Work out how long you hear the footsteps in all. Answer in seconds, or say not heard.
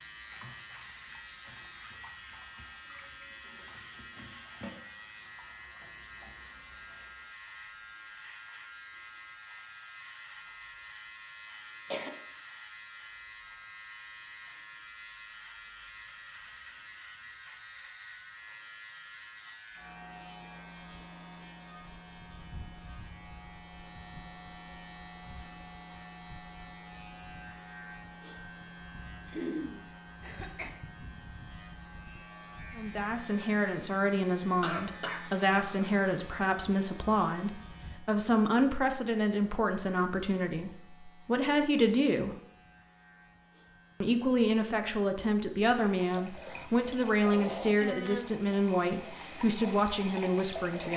not heard.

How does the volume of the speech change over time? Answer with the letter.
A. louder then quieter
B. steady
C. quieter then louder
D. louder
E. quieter
B.